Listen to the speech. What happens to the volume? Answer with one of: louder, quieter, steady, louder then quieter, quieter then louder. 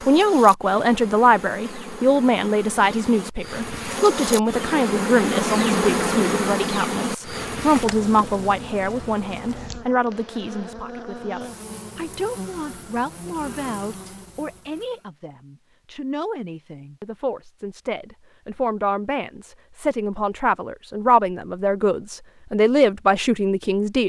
quieter then louder.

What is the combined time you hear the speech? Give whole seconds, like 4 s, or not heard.
24 s.